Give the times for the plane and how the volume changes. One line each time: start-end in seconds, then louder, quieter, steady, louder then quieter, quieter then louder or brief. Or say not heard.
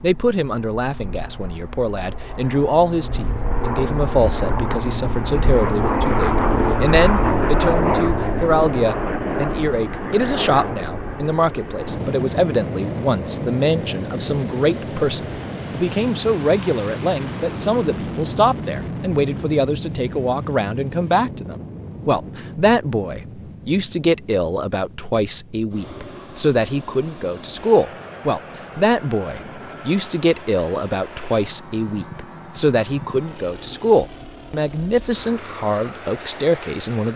0.0-37.1 quieter.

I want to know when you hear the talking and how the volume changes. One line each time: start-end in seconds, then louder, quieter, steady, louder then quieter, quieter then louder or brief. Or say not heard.
0.0-37.1 steady.